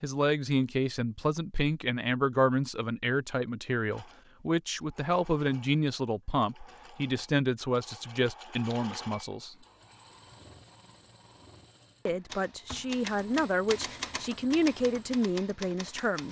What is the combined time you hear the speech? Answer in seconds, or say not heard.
14 s.